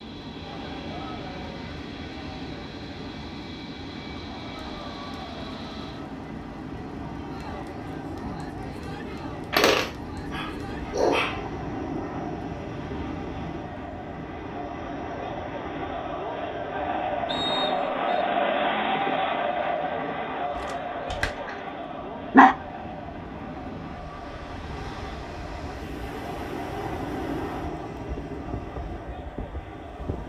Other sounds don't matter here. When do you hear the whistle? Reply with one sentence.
You can hear the whistle from 17.2 to 18.2 s.